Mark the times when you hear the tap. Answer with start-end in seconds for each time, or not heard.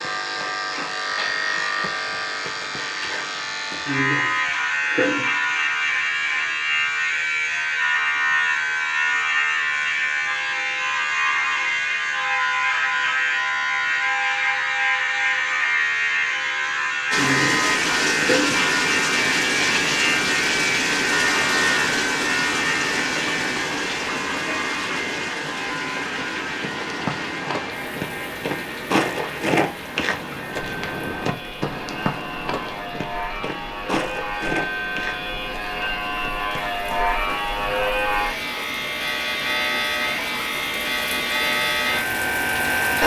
17.1-43.0.